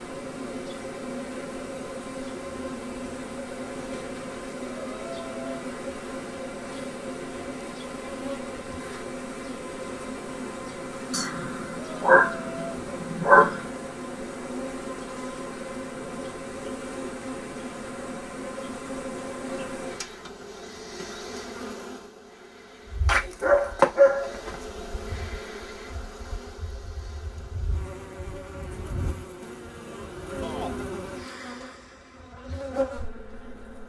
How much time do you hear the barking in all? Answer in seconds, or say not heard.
4 s.